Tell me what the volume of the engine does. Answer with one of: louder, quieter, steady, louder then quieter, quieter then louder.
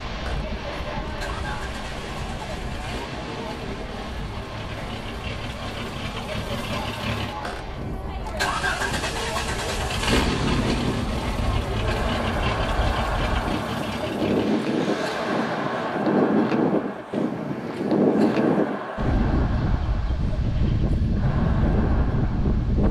louder then quieter.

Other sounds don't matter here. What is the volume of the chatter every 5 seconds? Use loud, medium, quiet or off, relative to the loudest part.
medium, medium, loud, loud, medium.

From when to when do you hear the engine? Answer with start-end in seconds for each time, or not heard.
0.2-15.9.